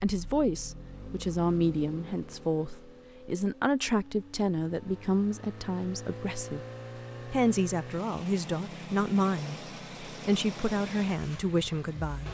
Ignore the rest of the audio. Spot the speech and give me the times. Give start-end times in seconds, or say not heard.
0.0-6.6, 7.3-12.2.